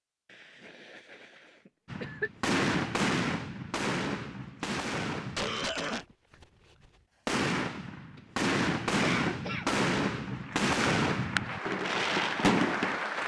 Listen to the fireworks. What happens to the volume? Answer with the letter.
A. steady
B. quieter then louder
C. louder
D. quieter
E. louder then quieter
B.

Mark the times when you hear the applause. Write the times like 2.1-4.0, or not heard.
10.3-13.2.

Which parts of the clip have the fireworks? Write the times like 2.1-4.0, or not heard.
1.9-13.0.